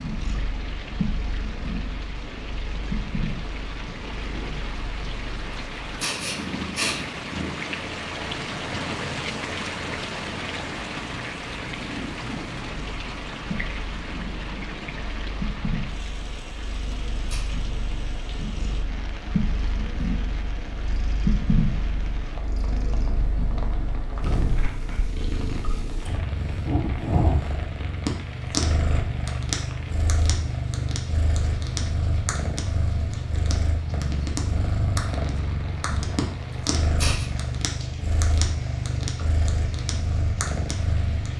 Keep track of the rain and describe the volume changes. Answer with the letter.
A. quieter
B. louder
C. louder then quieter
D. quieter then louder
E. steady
A.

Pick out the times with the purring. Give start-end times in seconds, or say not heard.
0.0-41.3.